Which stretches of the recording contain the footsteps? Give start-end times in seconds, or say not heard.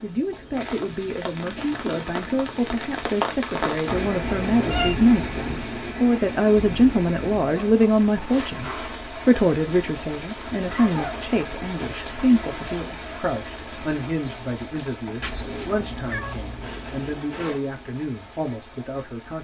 not heard.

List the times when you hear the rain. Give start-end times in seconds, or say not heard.
0.0-19.3.